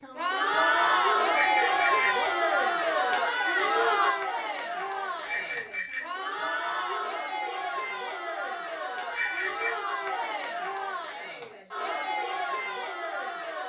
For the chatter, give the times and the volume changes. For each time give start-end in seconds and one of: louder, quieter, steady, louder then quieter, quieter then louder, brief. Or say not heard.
0.0-13.6 quieter.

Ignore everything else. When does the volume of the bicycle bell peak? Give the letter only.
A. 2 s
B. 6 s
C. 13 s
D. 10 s
A.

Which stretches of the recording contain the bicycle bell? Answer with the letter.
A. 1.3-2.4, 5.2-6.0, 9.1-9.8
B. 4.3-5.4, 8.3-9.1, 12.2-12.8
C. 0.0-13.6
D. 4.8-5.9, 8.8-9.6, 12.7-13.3
A.